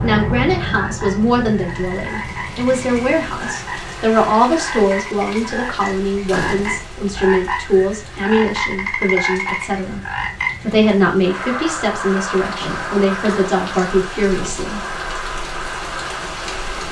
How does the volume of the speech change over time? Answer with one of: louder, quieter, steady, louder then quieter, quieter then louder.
steady.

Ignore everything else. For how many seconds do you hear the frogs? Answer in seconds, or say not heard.
17 s.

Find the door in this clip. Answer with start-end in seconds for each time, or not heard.
6.2-6.9, 12.6-13.1.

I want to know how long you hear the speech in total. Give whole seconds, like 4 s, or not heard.
14 s.